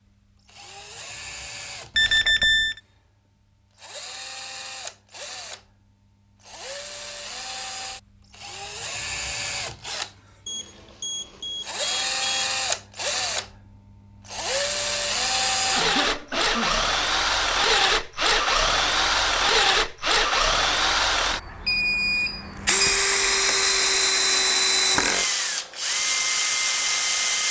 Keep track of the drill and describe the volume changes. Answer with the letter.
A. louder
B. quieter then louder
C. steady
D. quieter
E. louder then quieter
A.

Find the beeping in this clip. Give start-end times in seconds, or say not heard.
1.9-2.8, 10.4-12.4, 21.6-23.0.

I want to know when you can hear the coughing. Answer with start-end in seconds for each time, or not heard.
15.8-16.9.